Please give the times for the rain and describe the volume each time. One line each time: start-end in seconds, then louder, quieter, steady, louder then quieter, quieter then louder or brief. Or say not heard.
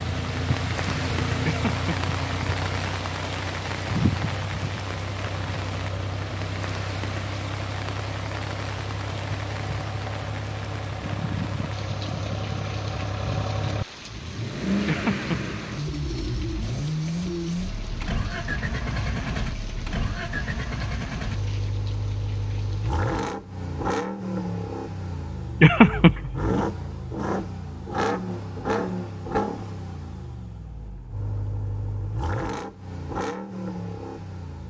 0.0-23.1 quieter.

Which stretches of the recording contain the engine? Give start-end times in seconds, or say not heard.
0.0-34.6.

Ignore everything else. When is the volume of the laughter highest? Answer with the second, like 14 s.
26 s.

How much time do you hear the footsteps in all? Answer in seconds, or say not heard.
not heard.